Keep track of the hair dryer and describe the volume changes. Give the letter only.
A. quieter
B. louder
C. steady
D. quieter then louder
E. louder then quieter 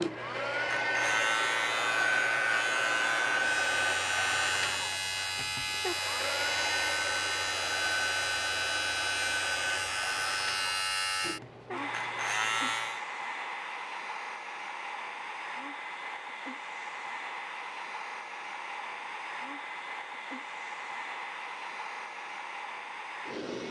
A.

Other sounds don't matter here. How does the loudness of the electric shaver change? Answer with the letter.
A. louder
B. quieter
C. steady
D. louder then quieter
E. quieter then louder
C.